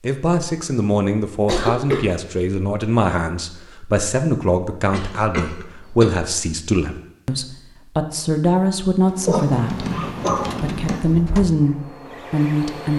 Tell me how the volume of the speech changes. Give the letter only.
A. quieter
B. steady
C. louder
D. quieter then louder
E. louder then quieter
B.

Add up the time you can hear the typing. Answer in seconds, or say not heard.
2 s.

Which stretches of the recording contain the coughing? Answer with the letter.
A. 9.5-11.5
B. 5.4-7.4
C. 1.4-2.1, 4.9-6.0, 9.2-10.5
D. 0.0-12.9
C.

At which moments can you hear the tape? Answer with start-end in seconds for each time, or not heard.
not heard.